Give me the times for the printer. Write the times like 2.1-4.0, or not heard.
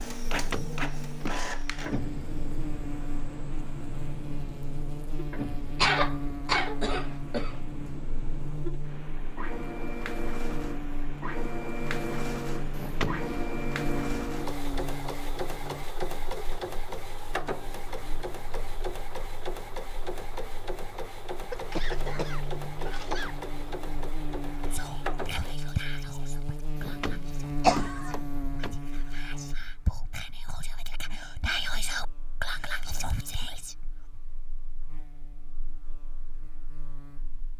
0.0-25.6.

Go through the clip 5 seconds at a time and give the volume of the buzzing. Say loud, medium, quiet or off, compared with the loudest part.
loud, loud, loud, medium, loud, loud, quiet, quiet.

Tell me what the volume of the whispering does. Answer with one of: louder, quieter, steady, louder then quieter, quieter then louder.
quieter then louder.